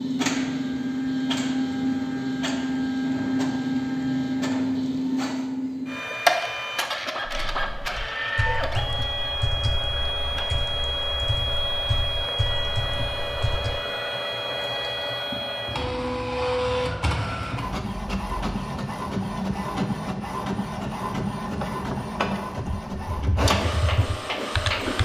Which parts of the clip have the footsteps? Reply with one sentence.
The footsteps can't be heard in this clip.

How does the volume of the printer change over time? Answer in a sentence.
The volume of the printer stays about the same.